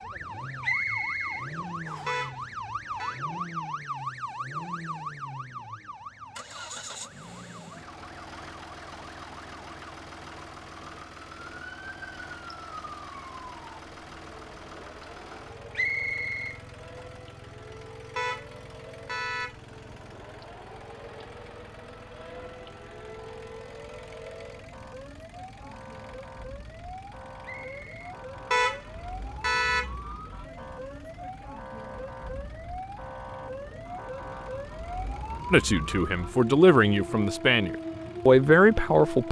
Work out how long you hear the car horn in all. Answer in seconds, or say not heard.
4 s.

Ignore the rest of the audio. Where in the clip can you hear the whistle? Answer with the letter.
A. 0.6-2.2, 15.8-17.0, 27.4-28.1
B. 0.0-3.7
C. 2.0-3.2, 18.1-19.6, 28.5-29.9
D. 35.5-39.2
A.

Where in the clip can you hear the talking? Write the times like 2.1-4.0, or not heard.
35.5-39.2.